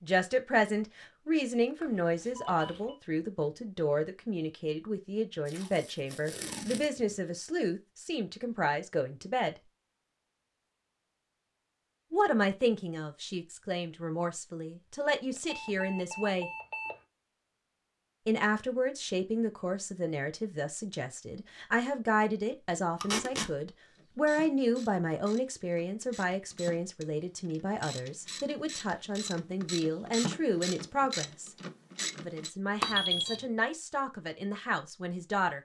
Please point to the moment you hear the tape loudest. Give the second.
23 s.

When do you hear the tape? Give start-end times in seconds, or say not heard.
5.5-6.8, 23.0-23.5.